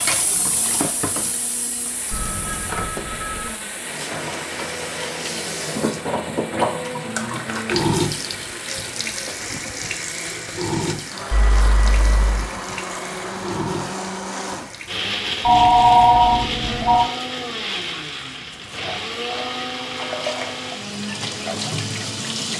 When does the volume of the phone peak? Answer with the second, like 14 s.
16 s.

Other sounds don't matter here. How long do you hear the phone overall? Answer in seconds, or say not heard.
4 s.